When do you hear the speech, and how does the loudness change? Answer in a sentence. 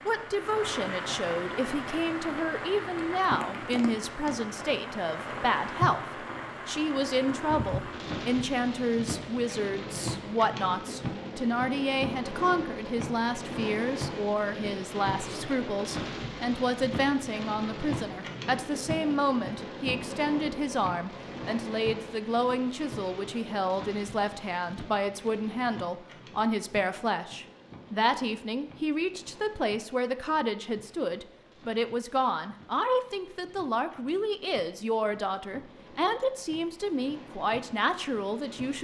You can hear the speech from 0.1 to 38.8 s, at a steady volume.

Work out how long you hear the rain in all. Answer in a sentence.
The rain can be heard for 39 seconds in total.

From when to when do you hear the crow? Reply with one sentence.
You can't hear the crow here.